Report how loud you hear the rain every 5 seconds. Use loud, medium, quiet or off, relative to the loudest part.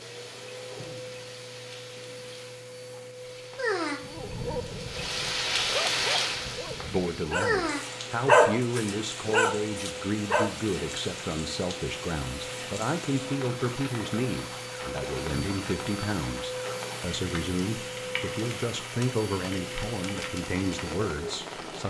medium, loud, medium, medium, medium.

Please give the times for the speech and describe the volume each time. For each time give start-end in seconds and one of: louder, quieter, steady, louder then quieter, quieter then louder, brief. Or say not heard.
6.8-21.8 steady.